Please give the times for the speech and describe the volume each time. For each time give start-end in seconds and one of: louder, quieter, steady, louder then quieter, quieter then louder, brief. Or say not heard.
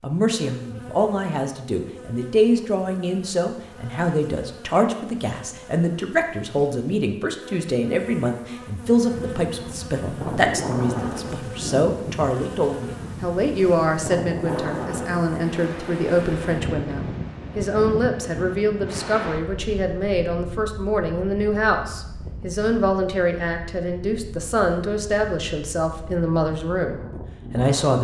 0.0-27.9 steady.